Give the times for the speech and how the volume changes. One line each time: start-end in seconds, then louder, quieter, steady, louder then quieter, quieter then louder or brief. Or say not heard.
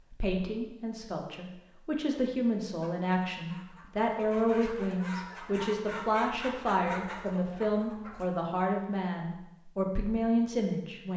0.1-11.1 steady.